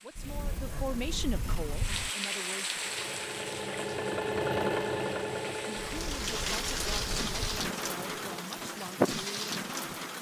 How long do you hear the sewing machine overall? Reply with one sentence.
The sewing machine can be heard for 6 seconds in total.